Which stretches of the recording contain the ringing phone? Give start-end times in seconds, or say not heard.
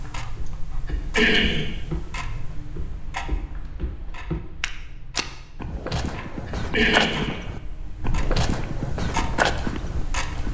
not heard.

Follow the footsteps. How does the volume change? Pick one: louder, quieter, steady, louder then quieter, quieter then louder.
louder.